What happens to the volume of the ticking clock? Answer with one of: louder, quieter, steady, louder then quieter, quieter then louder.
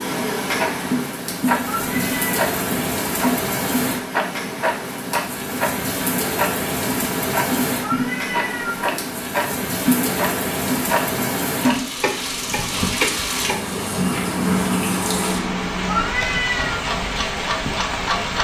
steady.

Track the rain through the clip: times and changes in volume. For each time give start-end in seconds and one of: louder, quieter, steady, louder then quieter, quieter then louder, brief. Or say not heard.
0.0-18.3 steady.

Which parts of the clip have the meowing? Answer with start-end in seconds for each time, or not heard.
1.6-2.2, 7.8-8.8, 15.8-16.8.